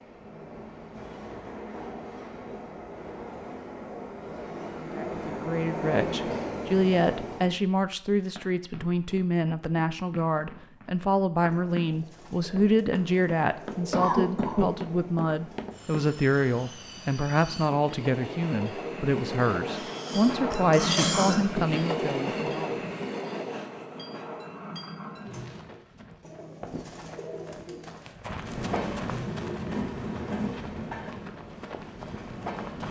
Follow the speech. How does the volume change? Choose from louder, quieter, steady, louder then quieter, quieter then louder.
steady.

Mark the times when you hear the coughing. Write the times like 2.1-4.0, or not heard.
13.9-14.8, 19.7-21.6.